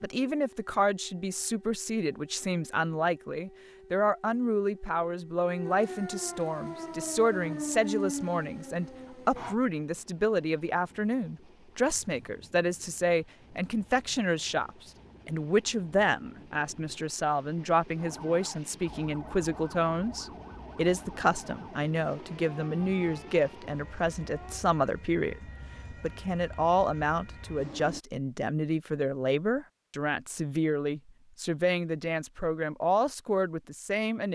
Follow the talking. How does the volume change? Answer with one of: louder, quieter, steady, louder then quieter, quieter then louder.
steady.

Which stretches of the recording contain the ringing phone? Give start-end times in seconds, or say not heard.
not heard.